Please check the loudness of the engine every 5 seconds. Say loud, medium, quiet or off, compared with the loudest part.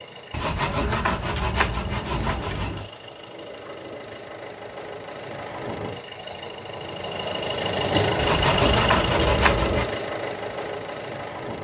quiet, loud, medium.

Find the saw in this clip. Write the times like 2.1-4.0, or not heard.
0.3-2.9, 8.2-9.8.